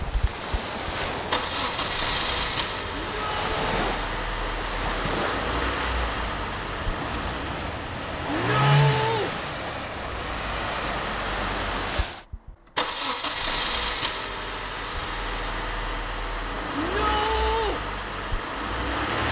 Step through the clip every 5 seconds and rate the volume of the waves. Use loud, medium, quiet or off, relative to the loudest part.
loud, loud, loud, off.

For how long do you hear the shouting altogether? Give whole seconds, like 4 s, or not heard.
3 s.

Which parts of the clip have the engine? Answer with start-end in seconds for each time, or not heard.
0.0-19.2.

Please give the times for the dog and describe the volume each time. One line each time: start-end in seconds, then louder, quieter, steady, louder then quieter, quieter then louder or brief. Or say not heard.
not heard.